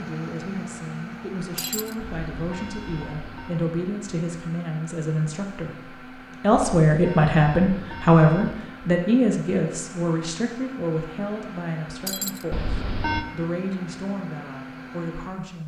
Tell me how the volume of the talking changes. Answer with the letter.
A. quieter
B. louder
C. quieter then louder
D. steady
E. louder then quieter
E.